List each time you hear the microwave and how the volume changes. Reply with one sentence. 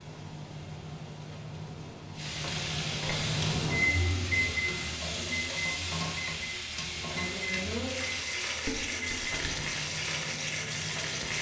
The microwave can be heard from 0.0 to 11.3 s, getting louder then quieter.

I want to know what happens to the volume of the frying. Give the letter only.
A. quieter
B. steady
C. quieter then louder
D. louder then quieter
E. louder
E.